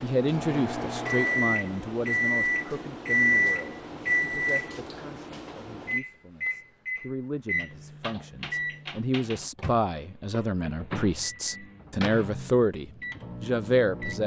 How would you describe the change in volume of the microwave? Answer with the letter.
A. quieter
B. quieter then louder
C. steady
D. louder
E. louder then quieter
A.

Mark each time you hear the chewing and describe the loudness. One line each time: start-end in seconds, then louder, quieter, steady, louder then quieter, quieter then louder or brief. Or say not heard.
not heard.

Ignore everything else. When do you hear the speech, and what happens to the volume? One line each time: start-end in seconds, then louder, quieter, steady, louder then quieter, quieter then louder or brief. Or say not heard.
0.0-14.2 quieter then louder.